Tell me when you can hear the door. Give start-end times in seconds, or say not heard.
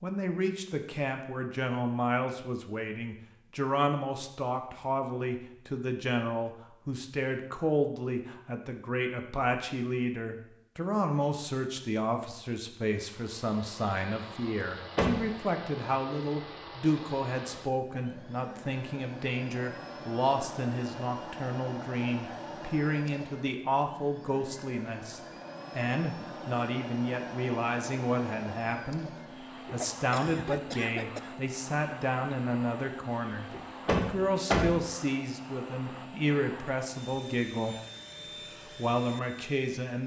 14.6-15.2, 33.9-34.6.